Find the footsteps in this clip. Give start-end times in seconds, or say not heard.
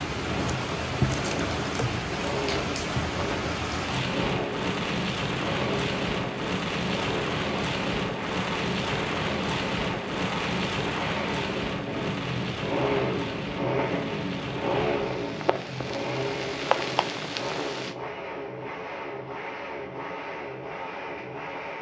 not heard.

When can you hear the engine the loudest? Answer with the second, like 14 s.
13 s.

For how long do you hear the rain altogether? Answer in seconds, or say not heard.
18 s.